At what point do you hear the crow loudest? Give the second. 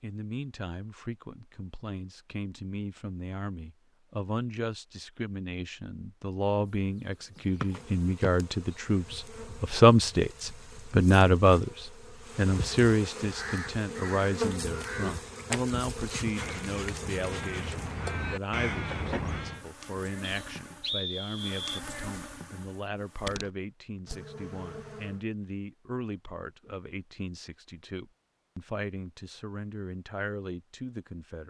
19 s.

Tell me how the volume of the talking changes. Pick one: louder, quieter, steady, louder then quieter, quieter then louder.
louder then quieter.